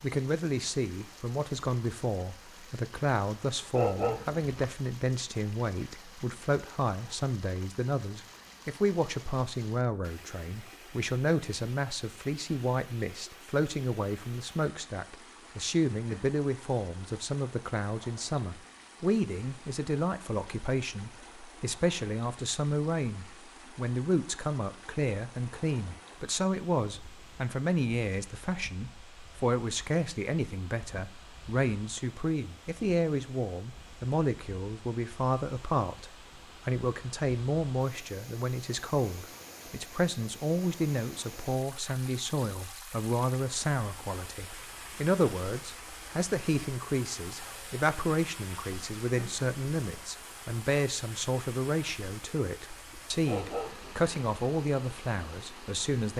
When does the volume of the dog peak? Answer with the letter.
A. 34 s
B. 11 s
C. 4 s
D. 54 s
C.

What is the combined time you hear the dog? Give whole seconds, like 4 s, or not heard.
2 s.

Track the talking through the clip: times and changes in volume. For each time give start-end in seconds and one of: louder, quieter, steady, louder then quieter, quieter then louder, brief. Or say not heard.
0.0-56.1 steady.